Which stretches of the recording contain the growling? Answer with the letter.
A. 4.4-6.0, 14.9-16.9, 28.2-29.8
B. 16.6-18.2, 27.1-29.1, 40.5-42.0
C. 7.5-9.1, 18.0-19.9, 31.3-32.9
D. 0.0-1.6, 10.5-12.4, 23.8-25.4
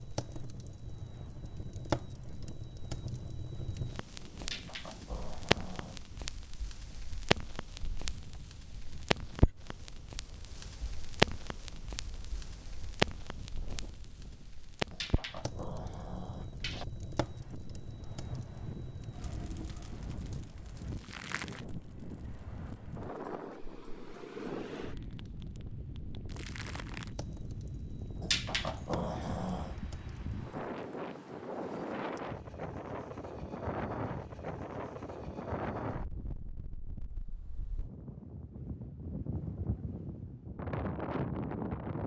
A.